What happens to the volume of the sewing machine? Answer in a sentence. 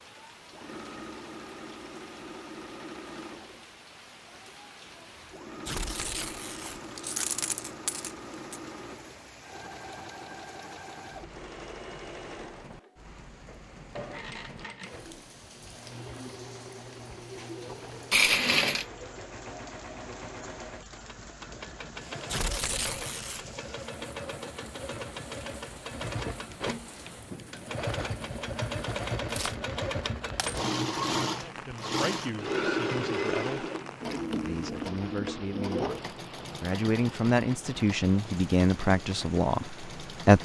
The loudness of the sewing machine goes up.